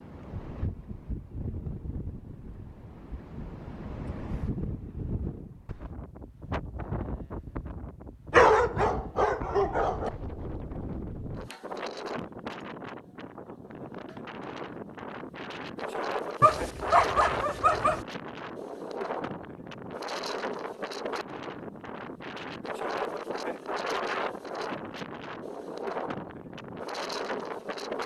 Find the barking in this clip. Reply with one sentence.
You can hear the barking from 8.3 to 10.1 s and from 16.4 to 18.1 s.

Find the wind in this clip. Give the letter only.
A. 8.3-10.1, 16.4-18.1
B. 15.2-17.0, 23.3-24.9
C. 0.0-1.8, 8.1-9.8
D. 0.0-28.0
D.